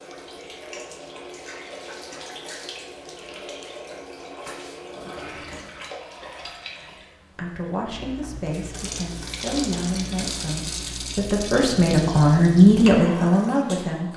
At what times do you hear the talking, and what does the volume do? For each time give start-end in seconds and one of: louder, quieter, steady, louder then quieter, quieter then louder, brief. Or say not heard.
7.3-14.1 louder.